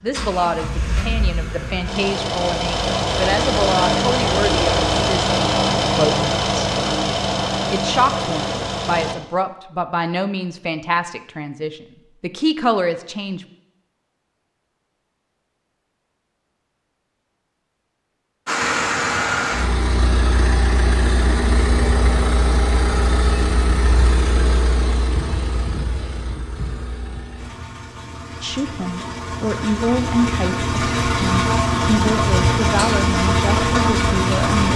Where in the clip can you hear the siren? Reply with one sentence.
You can't hear the siren here.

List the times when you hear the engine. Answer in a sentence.
You can hear the engine from 0.0 to 9.2 s and from 18.4 to 34.7 s.